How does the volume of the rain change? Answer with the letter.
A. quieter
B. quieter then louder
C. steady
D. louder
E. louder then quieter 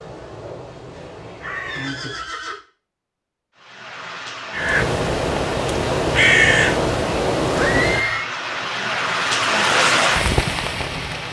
D.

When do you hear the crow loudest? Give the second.
6 s.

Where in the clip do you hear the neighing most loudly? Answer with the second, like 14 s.
8 s.